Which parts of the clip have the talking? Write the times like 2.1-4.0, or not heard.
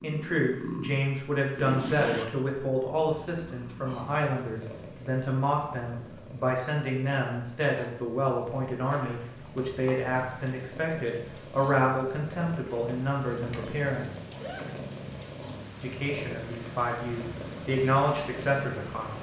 0.0-14.1, 15.8-19.1.